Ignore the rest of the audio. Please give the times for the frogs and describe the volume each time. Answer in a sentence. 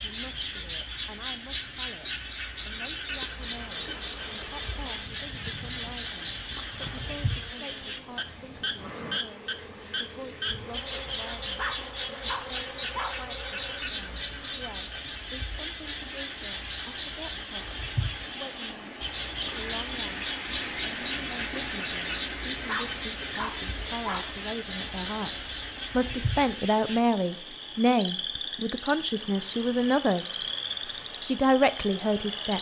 The frogs can be heard from 0.0 to 32.5 s, at a steady volume.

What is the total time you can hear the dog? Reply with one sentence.
You can hear the dog for 3 seconds altogether.